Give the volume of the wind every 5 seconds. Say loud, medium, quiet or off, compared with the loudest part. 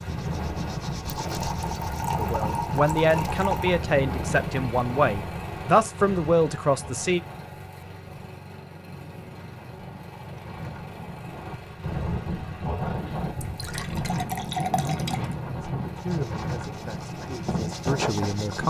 loud, medium, loud, loud.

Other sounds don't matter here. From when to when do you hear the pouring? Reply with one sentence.
You can hear the pouring from 1.2 to 3.8 s and from 13.4 to 15.3 s.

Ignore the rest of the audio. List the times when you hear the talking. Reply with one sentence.
You can hear the talking from 2.1 to 7.2 s and from 15.6 to 18.6 s.